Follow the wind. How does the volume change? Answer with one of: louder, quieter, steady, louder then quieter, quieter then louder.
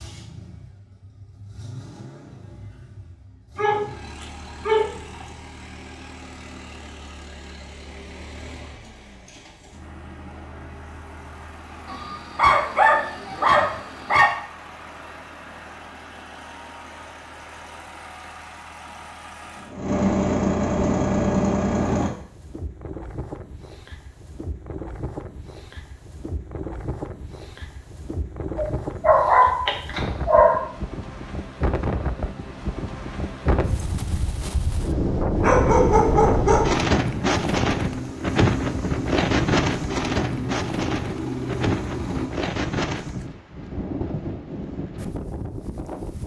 louder then quieter.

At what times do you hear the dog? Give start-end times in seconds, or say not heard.
3.5-5.2, 11.8-14.3, 28.6-30.6, 35.4-36.7.